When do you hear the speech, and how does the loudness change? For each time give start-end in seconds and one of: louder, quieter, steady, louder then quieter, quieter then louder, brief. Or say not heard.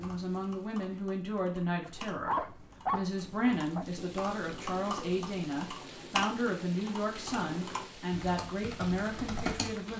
0.0-9.9 steady.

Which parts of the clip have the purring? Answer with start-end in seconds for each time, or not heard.
not heard.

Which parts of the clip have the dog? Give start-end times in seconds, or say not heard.
1.9-3.9.